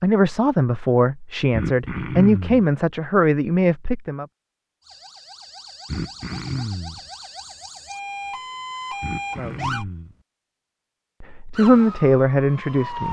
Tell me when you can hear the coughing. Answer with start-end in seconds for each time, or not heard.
1.5-2.6, 5.8-7.0, 9.0-10.2.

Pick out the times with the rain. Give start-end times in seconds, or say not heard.
not heard.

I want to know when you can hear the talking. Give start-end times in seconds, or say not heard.
0.0-4.2, 9.3-9.8, 11.2-13.0.